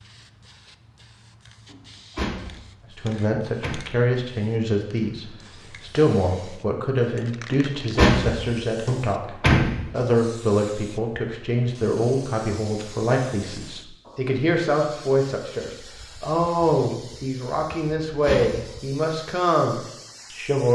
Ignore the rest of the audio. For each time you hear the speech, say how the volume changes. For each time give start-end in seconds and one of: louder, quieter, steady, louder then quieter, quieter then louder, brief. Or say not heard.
3.0-20.7 steady.